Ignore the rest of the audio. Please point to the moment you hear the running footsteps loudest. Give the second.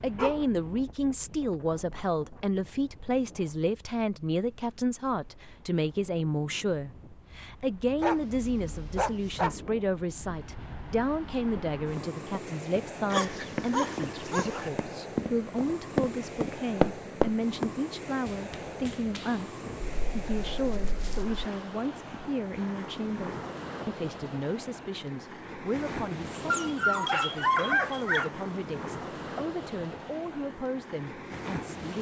17 s.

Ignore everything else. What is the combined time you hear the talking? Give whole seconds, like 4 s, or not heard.
32 s.